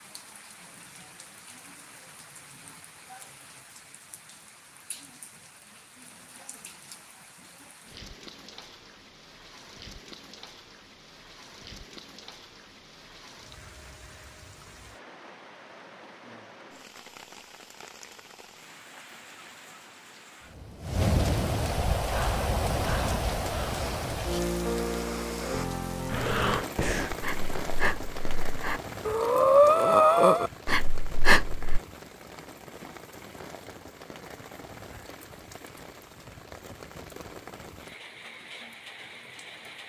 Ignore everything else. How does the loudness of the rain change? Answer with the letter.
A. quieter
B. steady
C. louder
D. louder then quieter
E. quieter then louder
D.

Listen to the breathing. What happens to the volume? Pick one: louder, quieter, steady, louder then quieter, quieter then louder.
louder.